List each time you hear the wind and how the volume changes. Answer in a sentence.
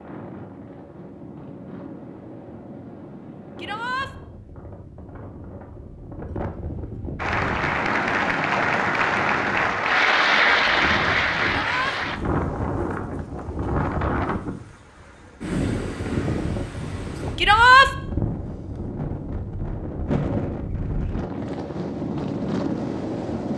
The wind can be heard from 0.0 to 23.5 s, getting louder.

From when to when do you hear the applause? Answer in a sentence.
The applause can be heard from 7.2 to 12.2 s.